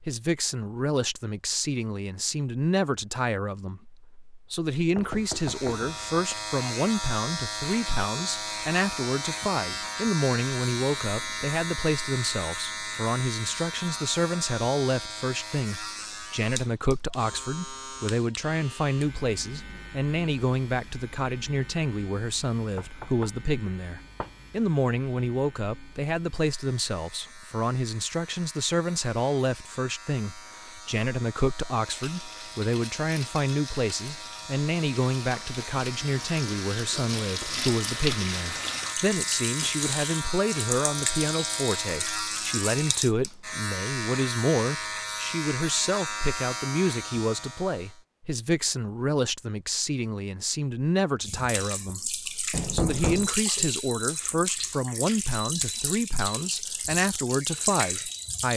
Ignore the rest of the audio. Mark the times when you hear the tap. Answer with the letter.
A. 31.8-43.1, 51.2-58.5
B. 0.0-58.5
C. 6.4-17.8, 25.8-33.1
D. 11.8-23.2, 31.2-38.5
A.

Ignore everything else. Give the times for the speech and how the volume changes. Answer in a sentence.
The speech can be heard from 0.0 to 58.5 s, at a steady volume.